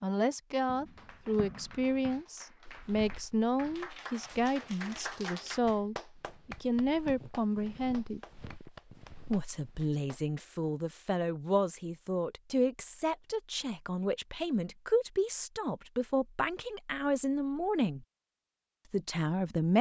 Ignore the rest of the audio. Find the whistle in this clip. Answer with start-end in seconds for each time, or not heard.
not heard.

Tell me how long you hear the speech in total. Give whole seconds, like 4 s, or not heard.
18 s.